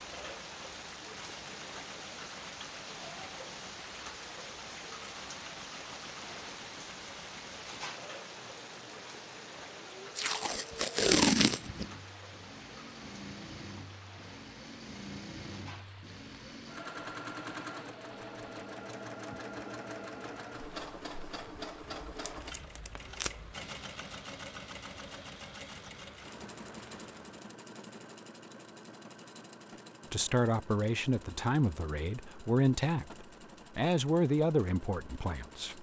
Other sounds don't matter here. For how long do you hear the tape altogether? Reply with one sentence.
You can hear the tape for 3 seconds altogether.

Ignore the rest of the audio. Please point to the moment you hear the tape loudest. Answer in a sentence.
The volume of the tape peaks at 11 seconds.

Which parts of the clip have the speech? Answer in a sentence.
You can hear the speech from 30.1 to 35.7 s.